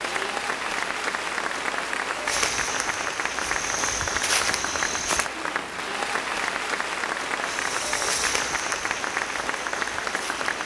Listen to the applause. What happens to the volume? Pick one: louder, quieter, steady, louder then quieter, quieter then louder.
steady.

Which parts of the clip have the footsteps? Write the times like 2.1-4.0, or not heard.
2.2-5.3, 7.4-10.5.